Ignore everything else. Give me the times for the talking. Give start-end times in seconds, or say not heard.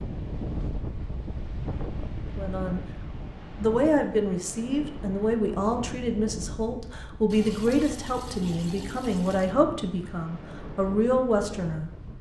2.4-2.8, 3.6-12.1.